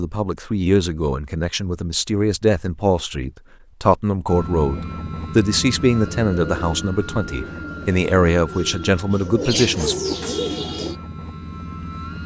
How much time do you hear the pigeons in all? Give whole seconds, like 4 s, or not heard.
5 s.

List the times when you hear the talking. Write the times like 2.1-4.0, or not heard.
0.0-9.9.